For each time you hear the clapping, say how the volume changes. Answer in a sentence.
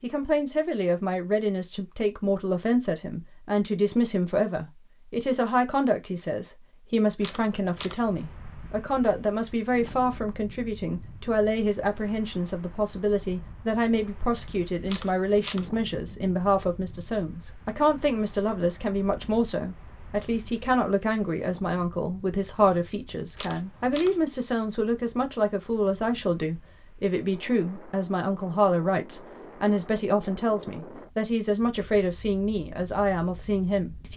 You can't hear the clapping here.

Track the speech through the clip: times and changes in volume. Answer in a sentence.
The speech can be heard from 0.0 to 34.1 s, at a steady volume.